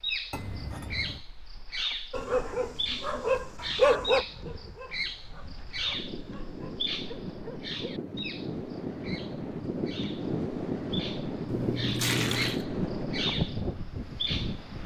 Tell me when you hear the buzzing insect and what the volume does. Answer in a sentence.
The buzzing insect can't be heard in this clip.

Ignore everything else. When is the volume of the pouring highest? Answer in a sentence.
The loudest moment of the pouring is at 12 seconds.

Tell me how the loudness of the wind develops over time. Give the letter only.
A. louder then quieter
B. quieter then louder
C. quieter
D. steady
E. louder
E.